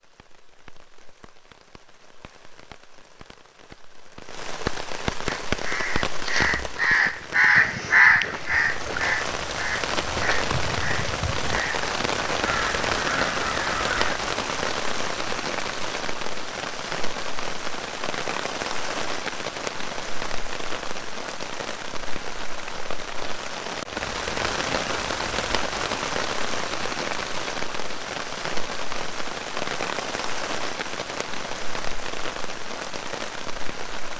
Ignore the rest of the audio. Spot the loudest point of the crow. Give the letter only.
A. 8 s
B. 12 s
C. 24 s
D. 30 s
A.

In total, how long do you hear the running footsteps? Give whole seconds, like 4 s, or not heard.
not heard.